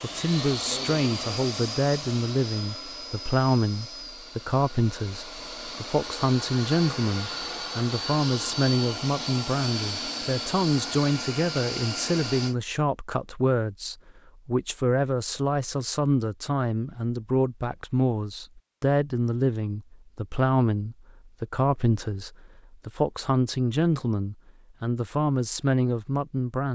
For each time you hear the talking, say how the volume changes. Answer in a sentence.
The talking can be heard from 0.0 to 26.7 s, at a steady volume.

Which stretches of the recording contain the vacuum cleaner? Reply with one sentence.
You can hear the vacuum cleaner from 0.0 to 12.6 s.